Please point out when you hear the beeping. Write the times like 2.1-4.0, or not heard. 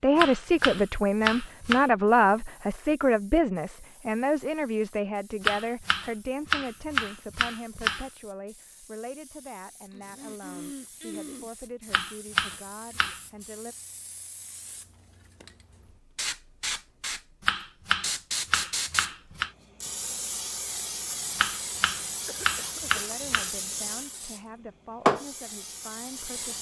not heard.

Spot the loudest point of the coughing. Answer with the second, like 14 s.
11 s.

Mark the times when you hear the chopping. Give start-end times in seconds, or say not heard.
0.1-1.9, 5.4-8.1, 11.9-13.2, 17.4-19.5, 21.4-23.5.